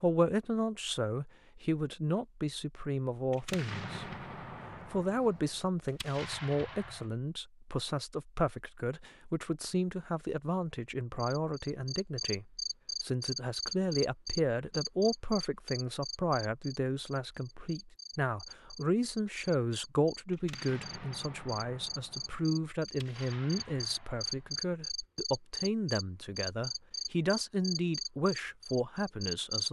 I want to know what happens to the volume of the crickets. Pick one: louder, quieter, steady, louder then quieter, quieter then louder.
quieter then louder.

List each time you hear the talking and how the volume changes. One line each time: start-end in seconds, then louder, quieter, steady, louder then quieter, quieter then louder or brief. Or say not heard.
0.0-4.2 steady
4.8-29.6 steady.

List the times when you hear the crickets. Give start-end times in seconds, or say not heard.
11.2-29.6.